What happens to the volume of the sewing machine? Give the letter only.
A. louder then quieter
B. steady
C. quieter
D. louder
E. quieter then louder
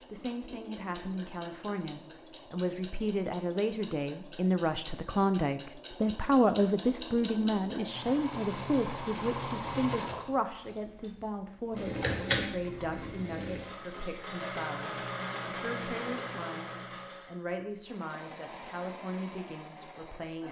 A.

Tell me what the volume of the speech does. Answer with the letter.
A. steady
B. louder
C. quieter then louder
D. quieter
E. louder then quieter
E.